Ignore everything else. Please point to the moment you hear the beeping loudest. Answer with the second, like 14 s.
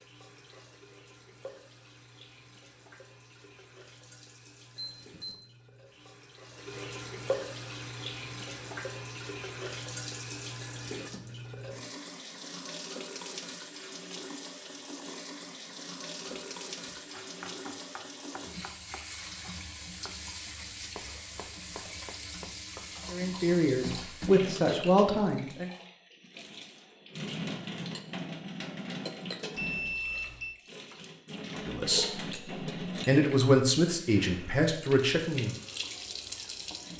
30 s.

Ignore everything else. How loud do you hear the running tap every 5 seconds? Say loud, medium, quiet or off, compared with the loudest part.
quiet, loud, loud, loud, loud, loud, loud, loud.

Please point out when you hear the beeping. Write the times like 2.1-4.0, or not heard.
4.8-5.3, 29.6-30.6.